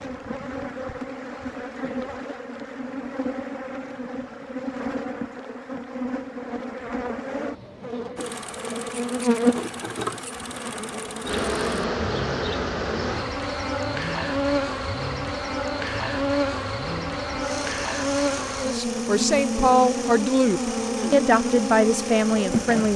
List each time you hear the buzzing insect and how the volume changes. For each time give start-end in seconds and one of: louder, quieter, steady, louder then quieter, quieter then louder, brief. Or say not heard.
0.0-22.9 louder.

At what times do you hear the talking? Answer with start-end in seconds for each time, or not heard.
18.6-22.9.